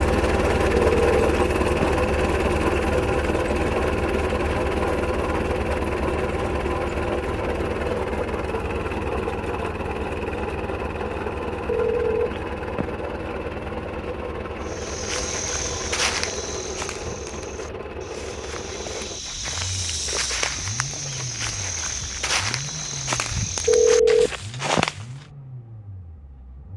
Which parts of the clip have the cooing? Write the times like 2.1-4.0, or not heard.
not heard.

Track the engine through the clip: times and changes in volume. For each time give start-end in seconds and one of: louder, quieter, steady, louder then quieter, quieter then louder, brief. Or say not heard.
0.0-26.7 quieter.